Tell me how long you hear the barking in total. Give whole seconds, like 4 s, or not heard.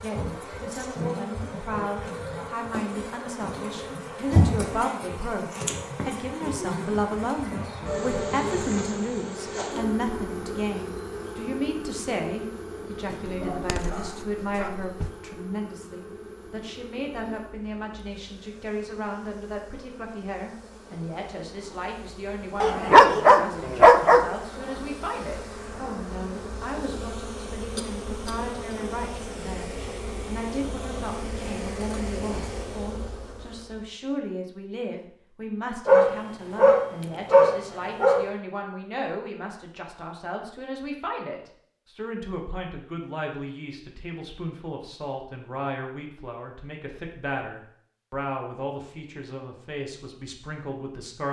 6 s.